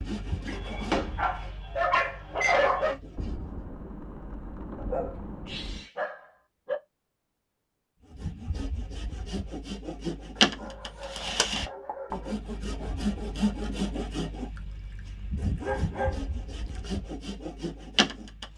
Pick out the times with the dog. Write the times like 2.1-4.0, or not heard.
0.5-3.0, 4.8-6.8, 10.3-12.3, 15.6-16.8.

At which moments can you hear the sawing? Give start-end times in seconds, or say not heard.
0.0-3.5, 8.1-18.5.